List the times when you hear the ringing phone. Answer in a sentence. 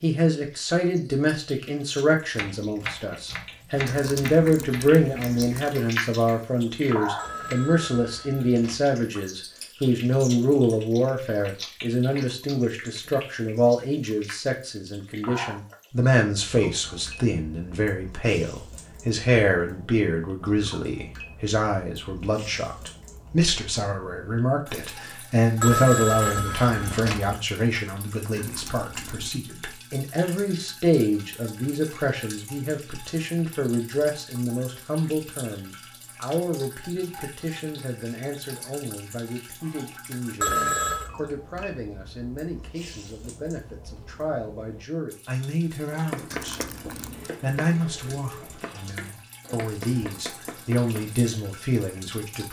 You can hear the ringing phone from 7.2 to 8.8 s, from 25.6 to 27.4 s and from 40.4 to 41.1 s.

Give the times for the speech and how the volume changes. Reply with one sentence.
You can hear the speech from 0.0 to 46.6 s, getting quieter; and from 47.2 to 52.4 s, getting quieter then louder.